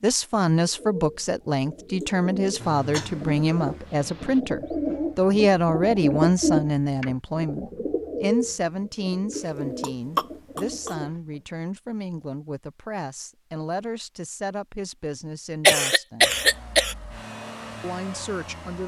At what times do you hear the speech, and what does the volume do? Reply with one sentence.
The speech can be heard from 0.0 to 16.3 s, getting quieter; and briefly from 17.8 to 18.8 s.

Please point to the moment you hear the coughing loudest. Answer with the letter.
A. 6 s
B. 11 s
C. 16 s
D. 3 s
C.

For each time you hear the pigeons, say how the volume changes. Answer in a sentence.
You can hear the pigeons from 0.6 to 11.4 s, getting louder then quieter.